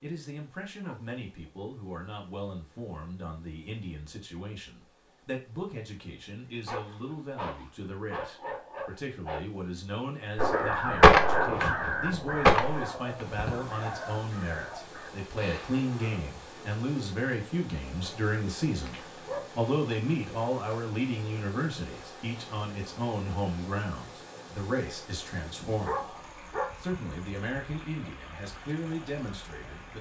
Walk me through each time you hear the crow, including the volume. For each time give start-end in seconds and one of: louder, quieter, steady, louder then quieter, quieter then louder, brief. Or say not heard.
10.3-16.2 quieter.